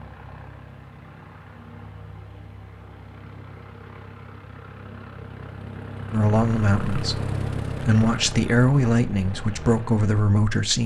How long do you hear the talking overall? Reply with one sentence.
You can hear the talking for 5 seconds altogether.